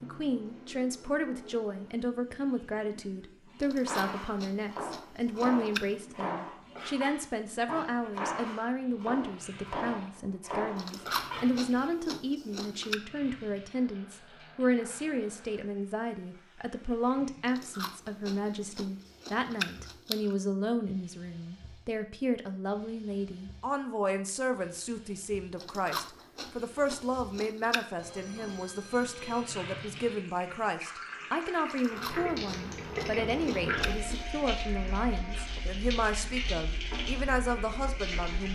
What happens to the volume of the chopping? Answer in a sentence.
The loudness of the chopping stays about the same.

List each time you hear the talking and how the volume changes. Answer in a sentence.
The talking can be heard from 0.0 to 38.5 s, at a steady volume.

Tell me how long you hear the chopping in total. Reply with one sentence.
The chopping can be heard for 8 seconds in total.